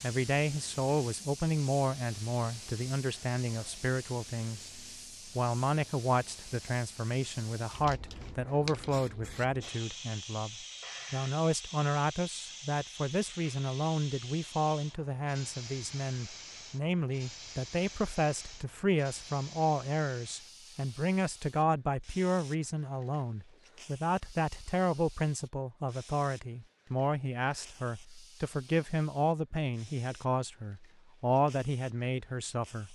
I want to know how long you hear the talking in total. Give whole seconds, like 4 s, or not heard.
33 s.